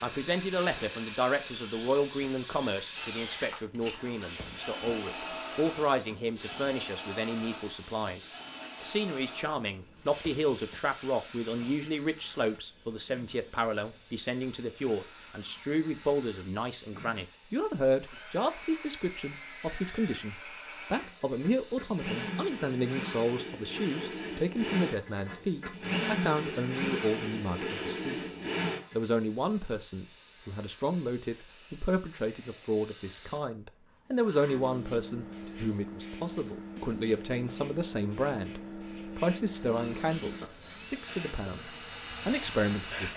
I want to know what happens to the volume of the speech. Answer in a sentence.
The volume of the speech stays about the same.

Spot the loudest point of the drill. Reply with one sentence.
The loudest moment of the drill is at 26 seconds.